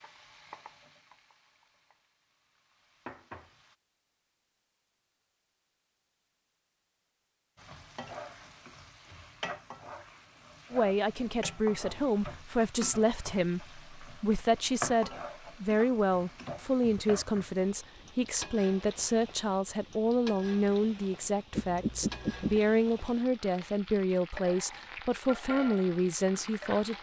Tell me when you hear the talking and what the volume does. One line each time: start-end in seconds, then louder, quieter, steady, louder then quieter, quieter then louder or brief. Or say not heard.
10.7-26.9 steady.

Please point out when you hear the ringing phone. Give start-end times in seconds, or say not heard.
21.5-22.6.